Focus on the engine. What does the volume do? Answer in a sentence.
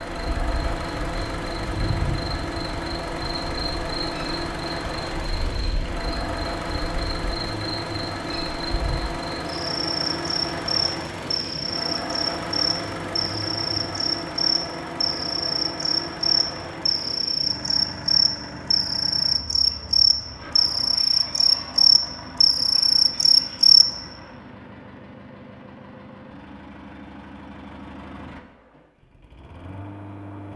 The volume of the engine goes down.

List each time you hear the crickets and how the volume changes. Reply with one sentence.
You can hear the crickets from 0.1 to 23.9 s, getting louder.